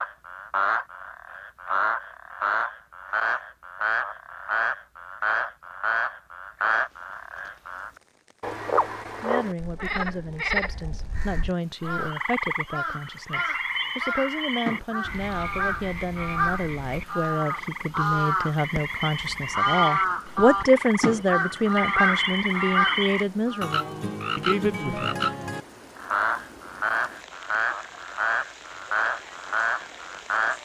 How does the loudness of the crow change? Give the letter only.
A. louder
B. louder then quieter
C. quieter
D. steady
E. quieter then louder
A.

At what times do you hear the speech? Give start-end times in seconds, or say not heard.
9.2-25.1.